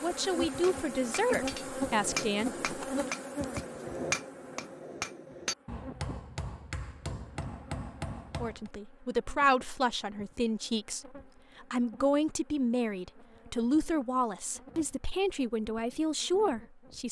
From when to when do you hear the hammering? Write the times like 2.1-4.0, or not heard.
0.5-8.7.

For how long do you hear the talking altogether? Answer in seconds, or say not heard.
12 s.